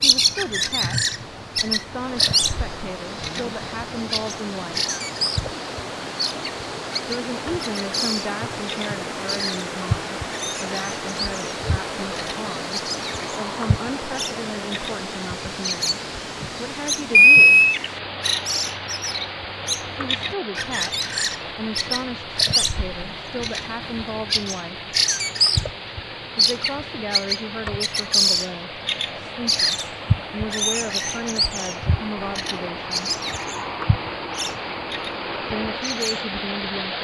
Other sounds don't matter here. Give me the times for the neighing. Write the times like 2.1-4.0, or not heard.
17.1-17.8.